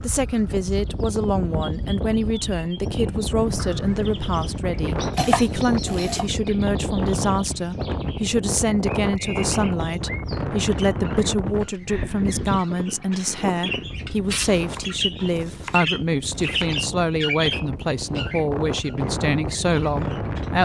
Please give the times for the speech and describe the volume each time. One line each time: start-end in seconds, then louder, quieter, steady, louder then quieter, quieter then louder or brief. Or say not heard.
0.0-20.5 steady.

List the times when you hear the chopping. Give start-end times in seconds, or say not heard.
5.2-6.3, 14.6-16.7.